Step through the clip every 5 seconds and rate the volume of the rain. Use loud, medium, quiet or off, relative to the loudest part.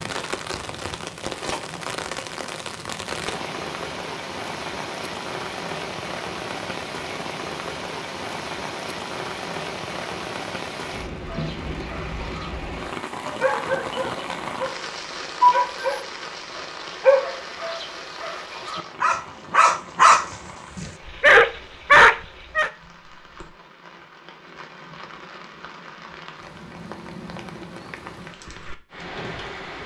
loud, loud, loud, medium, quiet, medium.